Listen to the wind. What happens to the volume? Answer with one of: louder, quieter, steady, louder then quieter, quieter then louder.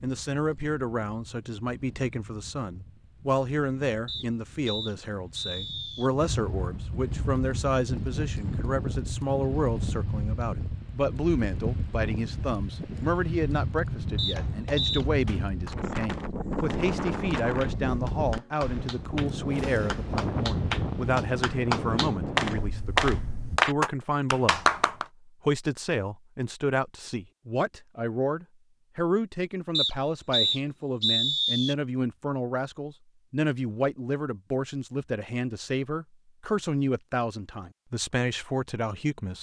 louder.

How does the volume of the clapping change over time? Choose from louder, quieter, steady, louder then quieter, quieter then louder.
louder.